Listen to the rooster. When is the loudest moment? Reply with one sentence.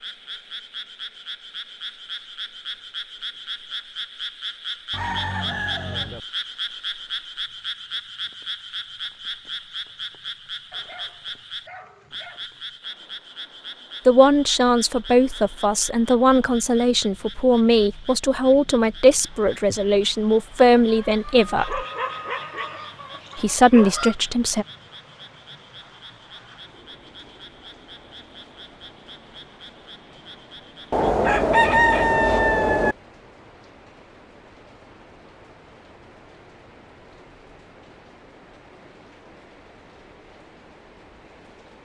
The volume of the rooster peaks at 32 seconds.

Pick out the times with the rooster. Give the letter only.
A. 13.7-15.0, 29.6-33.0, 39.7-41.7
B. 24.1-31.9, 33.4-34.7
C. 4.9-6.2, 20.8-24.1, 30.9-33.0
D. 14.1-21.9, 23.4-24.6
C.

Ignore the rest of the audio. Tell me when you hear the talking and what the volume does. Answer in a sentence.
You can hear the talking from 14.1 to 21.9 s, at a steady volume; and briefly from 23.4 to 24.6 s.